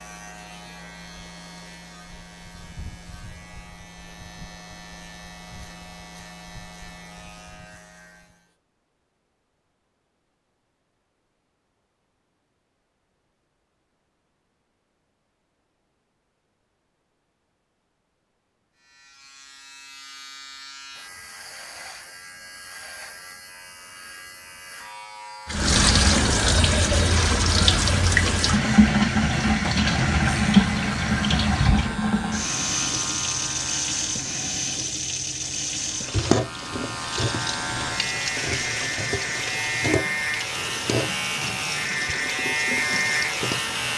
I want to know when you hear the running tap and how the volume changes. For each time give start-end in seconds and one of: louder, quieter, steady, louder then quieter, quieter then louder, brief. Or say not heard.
25.4-43.9 quieter.